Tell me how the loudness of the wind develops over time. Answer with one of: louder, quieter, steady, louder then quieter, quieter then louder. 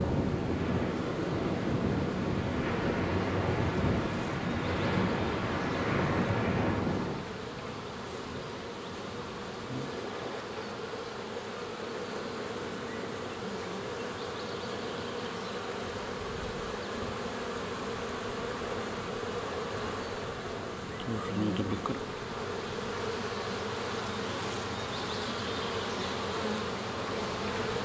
quieter.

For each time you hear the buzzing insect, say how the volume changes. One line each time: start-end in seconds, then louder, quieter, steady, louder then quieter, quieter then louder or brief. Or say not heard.
0.0-27.8 louder.